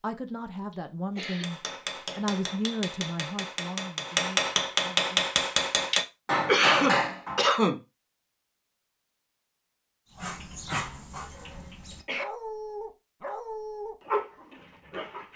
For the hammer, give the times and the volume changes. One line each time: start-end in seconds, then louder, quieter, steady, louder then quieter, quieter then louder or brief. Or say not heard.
1.2-7.5 louder.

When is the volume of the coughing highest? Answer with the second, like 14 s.
7 s.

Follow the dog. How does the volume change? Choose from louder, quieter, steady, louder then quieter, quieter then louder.
quieter then louder.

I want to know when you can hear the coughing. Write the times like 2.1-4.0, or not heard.
0.7-1.5, 6.5-7.8, 10.7-12.2.